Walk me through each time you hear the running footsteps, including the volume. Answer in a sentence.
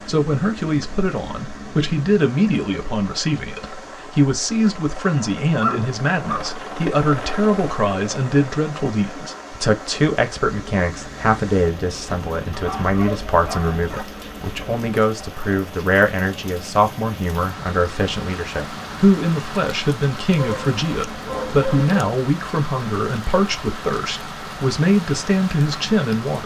The running footsteps can't be heard in this clip.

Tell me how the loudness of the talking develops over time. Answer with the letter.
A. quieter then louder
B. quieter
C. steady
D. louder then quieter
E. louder
C.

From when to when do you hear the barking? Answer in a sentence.
You can hear the barking from 5.6 to 6.5 s, from 12.1 to 14.1 s and from 20.4 to 21.9 s.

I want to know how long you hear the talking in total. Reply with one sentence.
You can hear the talking for 26 seconds altogether.